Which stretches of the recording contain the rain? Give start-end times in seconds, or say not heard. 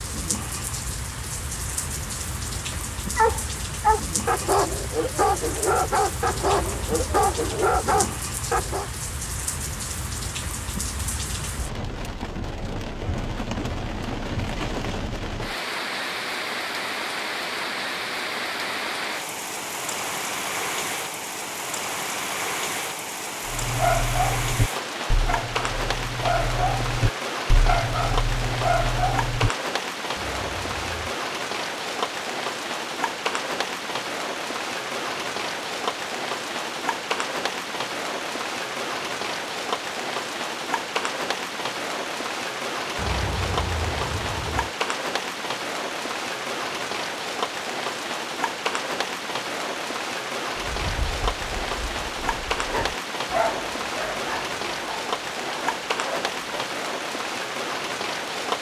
0.0-58.5.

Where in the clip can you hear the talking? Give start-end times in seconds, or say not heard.
not heard.